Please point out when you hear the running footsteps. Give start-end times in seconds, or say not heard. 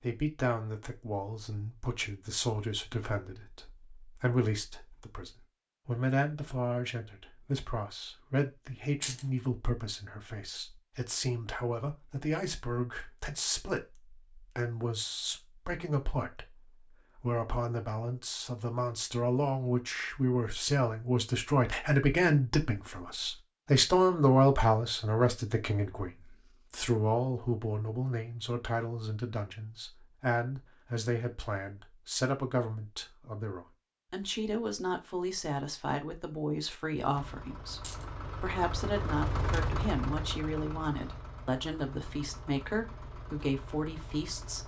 not heard.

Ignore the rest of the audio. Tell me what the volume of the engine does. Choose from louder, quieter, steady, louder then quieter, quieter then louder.
louder then quieter.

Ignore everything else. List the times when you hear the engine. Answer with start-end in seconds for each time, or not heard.
37.1-44.6.